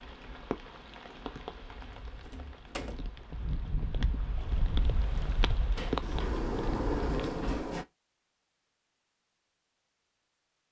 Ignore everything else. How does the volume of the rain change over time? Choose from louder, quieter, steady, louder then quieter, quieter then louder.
quieter then louder.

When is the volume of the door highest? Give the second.
7 s.